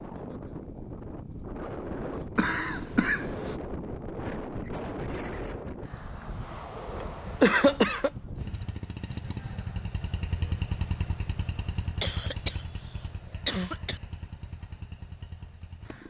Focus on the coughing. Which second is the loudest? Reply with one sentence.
The volume of the coughing peaks at 8 seconds.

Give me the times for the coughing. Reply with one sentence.
You can hear the coughing from 2.4 to 3.5 s, from 7.4 to 8.1 s and from 12.0 to 14.0 s.